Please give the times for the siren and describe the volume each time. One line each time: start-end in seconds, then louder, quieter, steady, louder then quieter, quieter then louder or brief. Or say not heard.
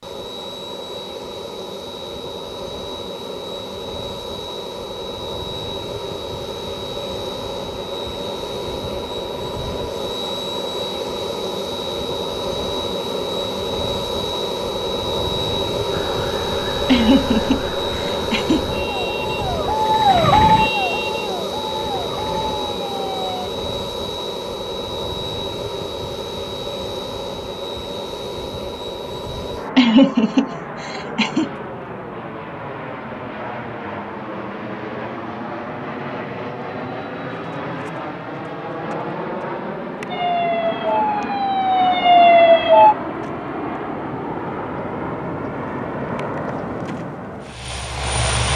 15.9-23.5 louder then quieter
40.1-43.0 brief.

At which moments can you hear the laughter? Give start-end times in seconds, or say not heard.
16.9-18.6, 29.8-31.5.